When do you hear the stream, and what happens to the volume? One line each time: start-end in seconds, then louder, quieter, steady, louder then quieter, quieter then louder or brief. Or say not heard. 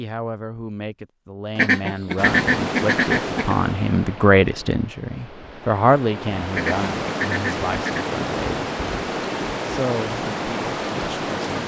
2.1-11.6 quieter then louder.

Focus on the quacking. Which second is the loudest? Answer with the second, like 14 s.
2 s.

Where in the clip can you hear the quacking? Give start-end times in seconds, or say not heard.
1.6-3.5, 6.5-8.1.